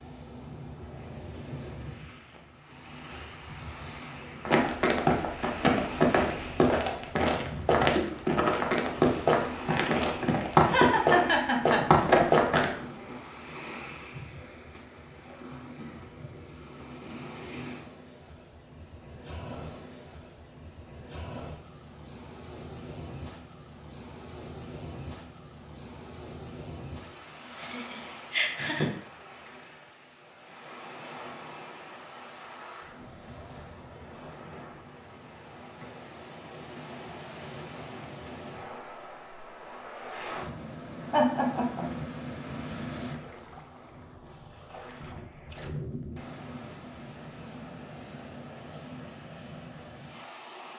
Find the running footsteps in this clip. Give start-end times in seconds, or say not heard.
4.5-12.7.